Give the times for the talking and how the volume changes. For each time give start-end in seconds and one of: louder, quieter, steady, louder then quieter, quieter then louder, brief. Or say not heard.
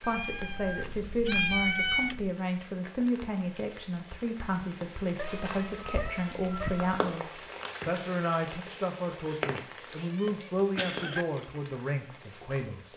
0.0-12.9 steady.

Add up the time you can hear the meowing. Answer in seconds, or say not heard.
6 s.